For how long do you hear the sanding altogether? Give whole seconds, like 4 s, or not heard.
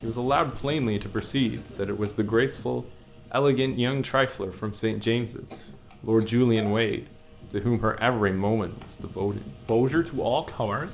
not heard.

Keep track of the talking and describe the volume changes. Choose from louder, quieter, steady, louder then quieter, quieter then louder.
steady.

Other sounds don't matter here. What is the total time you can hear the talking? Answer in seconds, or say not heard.
11 s.